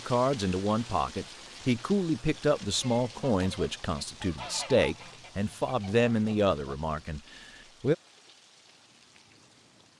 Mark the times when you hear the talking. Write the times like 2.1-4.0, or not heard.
0.1-8.0.